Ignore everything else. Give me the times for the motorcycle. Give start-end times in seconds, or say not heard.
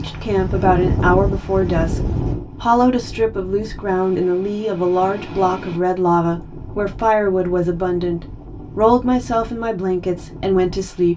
not heard.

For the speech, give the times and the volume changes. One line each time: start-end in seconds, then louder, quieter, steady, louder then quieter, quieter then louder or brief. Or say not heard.
0.0-11.1 steady.